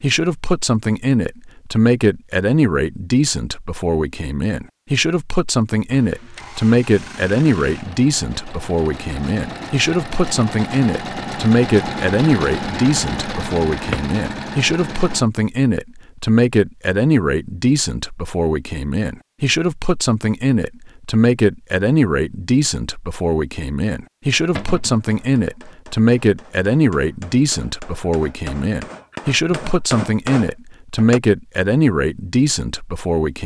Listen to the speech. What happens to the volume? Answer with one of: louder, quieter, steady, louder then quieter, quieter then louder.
steady.